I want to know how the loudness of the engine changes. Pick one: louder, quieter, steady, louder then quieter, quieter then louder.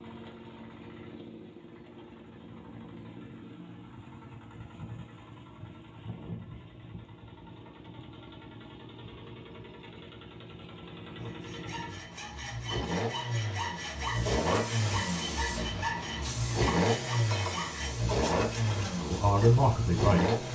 louder.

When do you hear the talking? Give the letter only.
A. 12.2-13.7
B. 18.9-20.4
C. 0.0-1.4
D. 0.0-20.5
B.